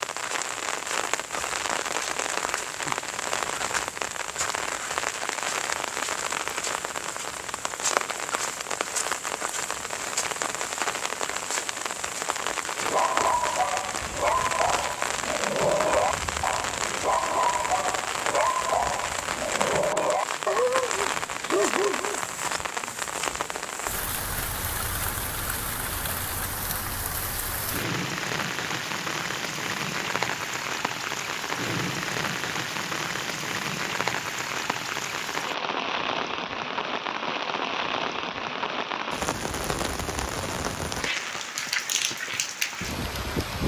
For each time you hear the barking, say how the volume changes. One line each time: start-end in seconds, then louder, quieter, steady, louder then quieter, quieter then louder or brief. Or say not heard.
12.8-22.2 steady.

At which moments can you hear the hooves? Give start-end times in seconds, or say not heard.
not heard.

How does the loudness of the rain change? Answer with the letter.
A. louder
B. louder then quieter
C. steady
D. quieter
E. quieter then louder
C.